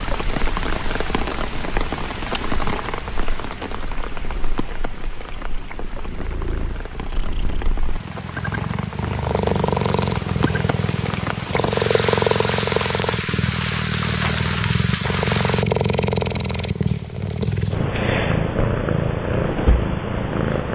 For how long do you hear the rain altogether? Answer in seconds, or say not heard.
16 s.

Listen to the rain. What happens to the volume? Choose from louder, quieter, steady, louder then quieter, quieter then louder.
quieter then louder.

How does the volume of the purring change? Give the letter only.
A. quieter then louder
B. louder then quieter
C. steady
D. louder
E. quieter
D.